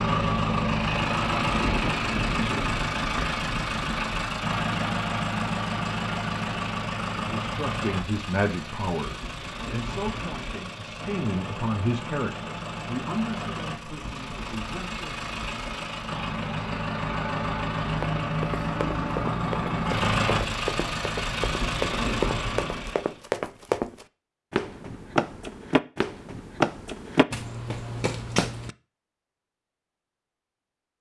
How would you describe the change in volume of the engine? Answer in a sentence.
The volume of the engine goes down, then up.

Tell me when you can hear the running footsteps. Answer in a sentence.
You can hear the running footsteps from 17.9 to 28.7 s.